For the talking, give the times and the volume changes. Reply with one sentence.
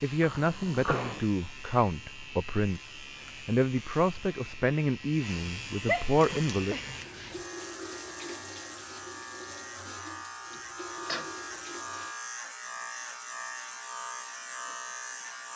You can hear the talking from 0.0 to 6.8 s, at a steady volume.